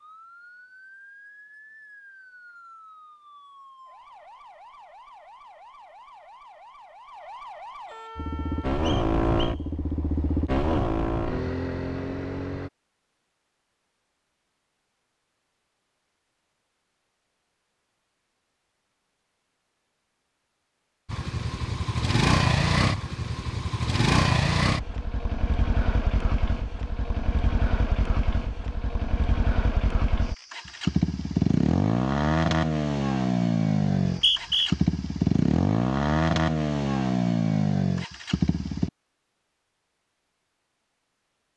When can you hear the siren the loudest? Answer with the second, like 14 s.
8 s.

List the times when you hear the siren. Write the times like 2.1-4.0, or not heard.
0.0-8.8.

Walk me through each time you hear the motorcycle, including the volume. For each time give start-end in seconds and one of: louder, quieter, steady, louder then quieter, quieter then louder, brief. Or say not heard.
8.2-12.7 quieter
21.1-38.9 quieter then louder.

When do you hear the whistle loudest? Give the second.
34 s.